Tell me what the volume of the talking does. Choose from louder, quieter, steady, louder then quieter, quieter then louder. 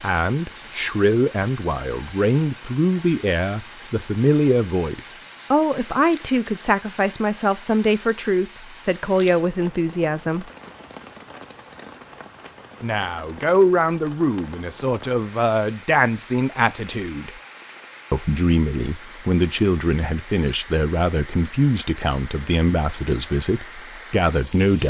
steady.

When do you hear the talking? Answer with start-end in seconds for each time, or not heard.
0.0-10.5, 12.8-17.4, 18.1-24.8.